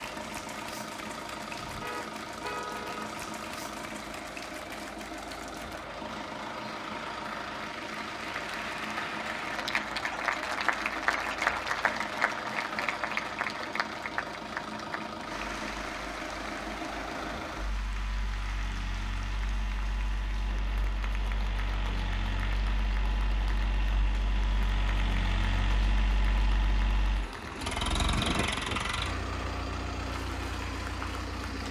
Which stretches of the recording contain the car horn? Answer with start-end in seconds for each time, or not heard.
1.6-3.1.